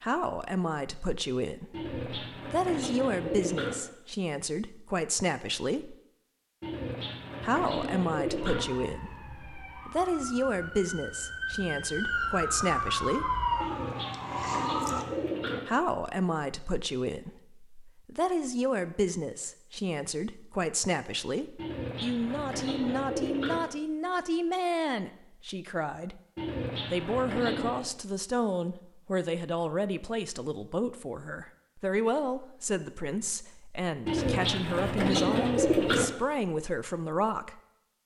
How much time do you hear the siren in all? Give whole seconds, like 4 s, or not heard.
7 s.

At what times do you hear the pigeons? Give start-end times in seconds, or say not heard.
1.7-3.8, 6.6-8.7, 13.6-15.6, 21.6-23.6, 26.4-27.9, 34.0-36.0.